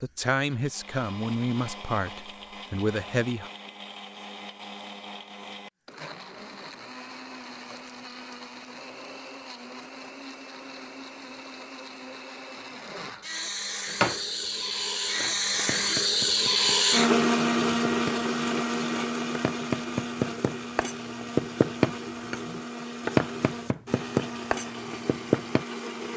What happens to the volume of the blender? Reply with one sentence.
The loudness of the blender goes up, then down.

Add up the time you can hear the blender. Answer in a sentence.
The blender can be heard for 26 seconds in total.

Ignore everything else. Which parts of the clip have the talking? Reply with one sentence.
You can hear the talking from 0.0 to 3.5 s.